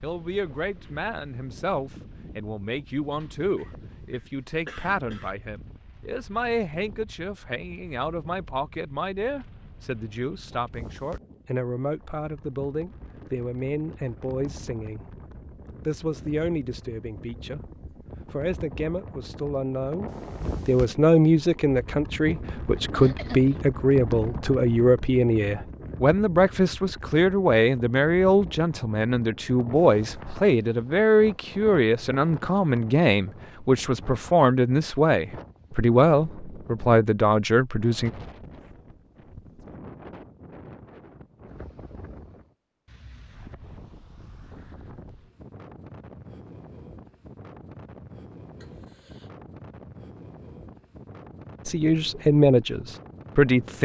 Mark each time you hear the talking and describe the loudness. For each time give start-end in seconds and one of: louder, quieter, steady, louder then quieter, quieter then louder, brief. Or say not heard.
0.0-15.1 steady
15.8-17.6 brief
18.3-38.1 steady
51.6-53.8 brief.